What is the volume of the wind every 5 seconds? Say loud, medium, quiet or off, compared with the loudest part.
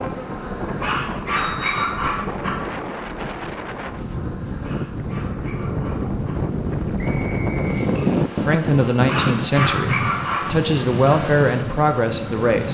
medium, loud, medium.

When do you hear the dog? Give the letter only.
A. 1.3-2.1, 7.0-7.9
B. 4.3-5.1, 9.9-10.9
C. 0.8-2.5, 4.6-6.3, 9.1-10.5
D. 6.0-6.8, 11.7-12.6
C.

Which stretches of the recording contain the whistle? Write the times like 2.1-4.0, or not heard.
1.3-2.1, 7.0-7.9.